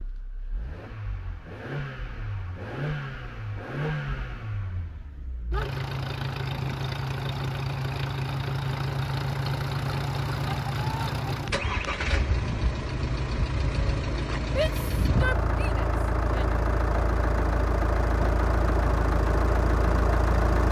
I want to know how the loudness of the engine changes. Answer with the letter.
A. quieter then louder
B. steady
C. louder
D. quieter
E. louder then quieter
C.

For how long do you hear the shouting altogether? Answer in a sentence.
You can hear the shouting for 2 seconds altogether.